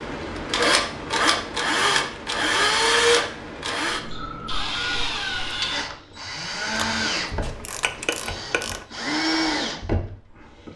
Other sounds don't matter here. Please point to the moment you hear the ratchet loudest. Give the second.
8 s.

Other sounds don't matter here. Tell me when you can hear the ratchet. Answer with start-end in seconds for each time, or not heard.
6.7-8.8.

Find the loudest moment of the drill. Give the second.
3 s.